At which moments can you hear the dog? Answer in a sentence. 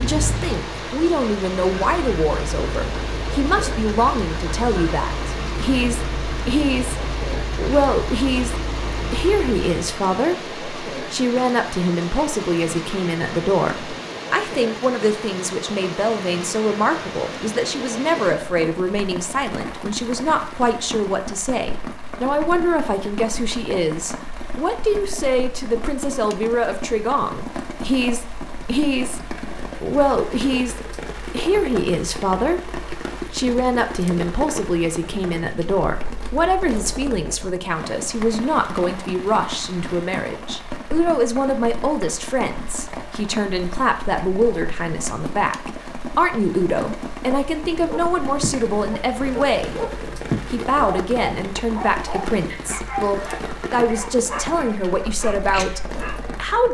The dog can be heard from 47.6 to 56.5 s.